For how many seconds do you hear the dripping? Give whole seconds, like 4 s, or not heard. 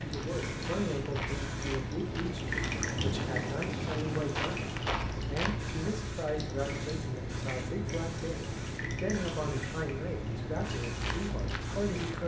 12 s.